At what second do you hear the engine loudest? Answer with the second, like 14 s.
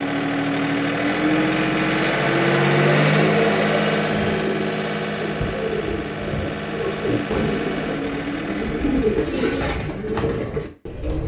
3 s.